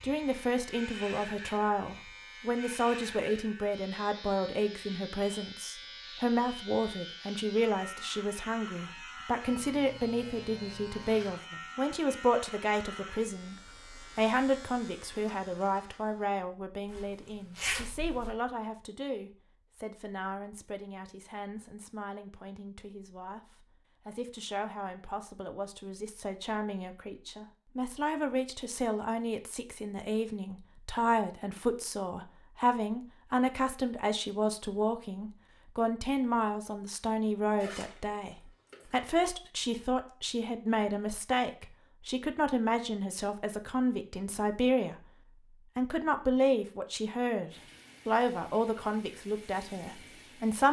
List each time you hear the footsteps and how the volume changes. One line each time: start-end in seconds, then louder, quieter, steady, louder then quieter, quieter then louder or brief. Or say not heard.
not heard.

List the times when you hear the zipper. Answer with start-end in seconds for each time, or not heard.
16.9-18.3, 37.5-39.1.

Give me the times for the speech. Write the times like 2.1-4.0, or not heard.
0.0-45.0, 45.8-50.6.